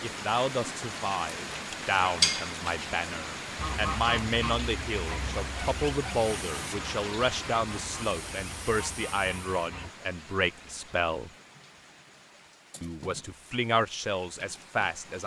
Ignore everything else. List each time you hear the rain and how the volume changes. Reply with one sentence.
You can hear the rain from 0.0 to 15.2 s, getting quieter.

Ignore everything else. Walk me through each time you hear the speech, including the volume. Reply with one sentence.
The speech can be heard from 0.0 to 11.3 s, at a steady volume; and briefly from 12.8 to 15.2 s.